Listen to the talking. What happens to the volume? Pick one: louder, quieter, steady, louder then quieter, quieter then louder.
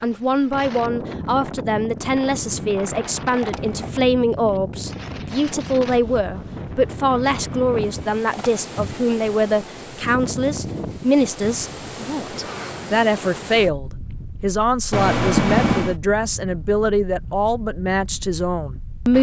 steady.